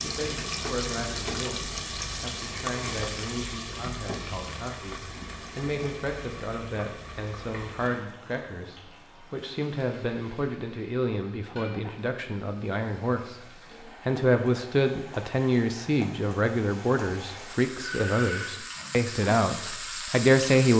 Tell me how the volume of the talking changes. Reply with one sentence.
The volume of the talking goes up.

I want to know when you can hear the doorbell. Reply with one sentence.
You can hear the doorbell from 17.8 to 18.8 s.